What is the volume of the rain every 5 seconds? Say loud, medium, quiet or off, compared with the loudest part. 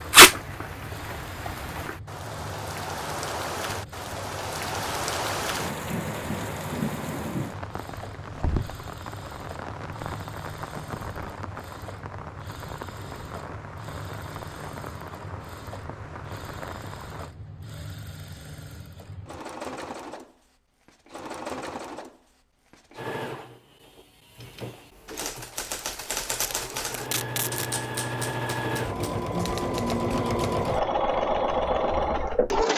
loud, loud, medium, medium, off, off, off.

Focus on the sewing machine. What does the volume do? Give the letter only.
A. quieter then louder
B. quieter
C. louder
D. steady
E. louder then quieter
C.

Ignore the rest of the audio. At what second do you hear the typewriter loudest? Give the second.
26 s.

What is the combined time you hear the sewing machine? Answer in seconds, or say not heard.
33 s.